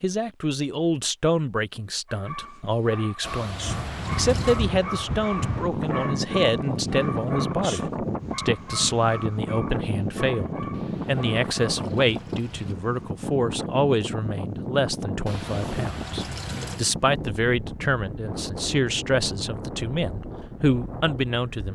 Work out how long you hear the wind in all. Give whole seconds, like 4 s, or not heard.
18 s.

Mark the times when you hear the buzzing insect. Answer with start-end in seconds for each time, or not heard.
not heard.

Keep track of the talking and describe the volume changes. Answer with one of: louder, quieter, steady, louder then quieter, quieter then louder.
steady.